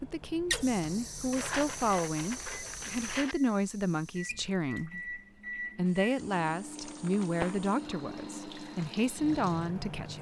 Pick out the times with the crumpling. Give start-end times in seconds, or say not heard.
1.3-3.4, 6.8-7.7.